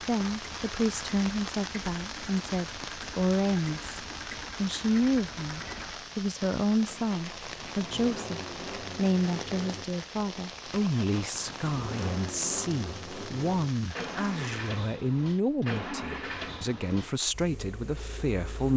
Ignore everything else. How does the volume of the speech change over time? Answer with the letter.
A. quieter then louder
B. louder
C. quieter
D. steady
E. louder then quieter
D.